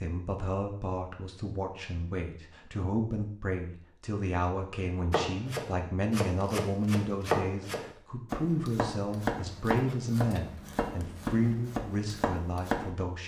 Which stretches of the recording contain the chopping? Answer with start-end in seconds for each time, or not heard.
5.1-12.9.